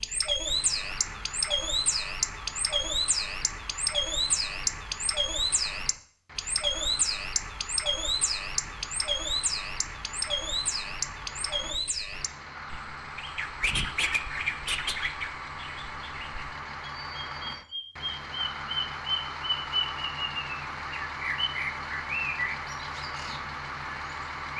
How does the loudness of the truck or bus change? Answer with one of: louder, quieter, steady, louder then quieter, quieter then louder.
louder.